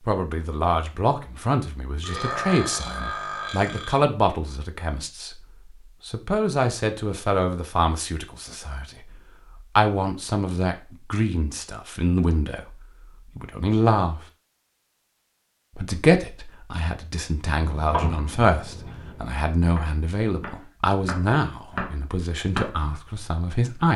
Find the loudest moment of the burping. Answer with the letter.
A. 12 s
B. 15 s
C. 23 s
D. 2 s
D.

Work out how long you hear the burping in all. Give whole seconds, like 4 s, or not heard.
2 s.